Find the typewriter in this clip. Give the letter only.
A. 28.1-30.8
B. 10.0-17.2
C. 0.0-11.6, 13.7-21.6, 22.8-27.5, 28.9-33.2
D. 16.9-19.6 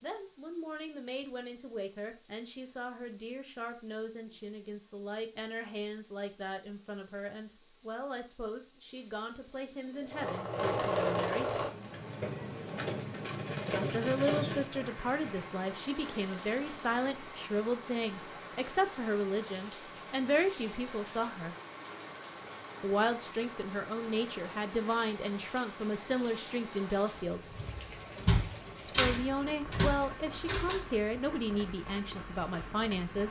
A.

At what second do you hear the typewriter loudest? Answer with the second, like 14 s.
29 s.